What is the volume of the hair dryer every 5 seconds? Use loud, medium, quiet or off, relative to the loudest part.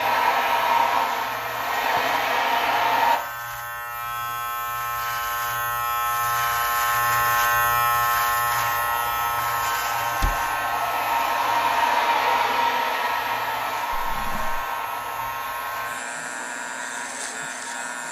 loud, medium, loud, quiet.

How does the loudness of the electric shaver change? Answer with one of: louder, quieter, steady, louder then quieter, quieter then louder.
louder then quieter.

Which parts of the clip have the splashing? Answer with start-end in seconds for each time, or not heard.
not heard.